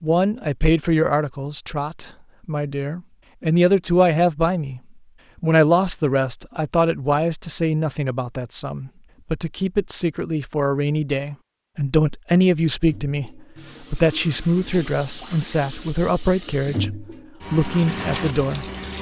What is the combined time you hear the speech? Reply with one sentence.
The speech can be heard for 18 seconds in total.